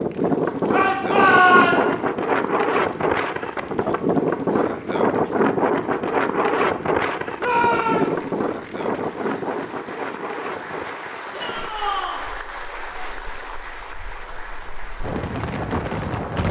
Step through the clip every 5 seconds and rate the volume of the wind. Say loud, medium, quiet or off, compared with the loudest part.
loud, loud, quiet, medium.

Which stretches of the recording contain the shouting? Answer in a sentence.
You can hear the shouting from 0.7 to 1.9 s, from 7.3 to 8.2 s and from 11.3 to 12.2 s.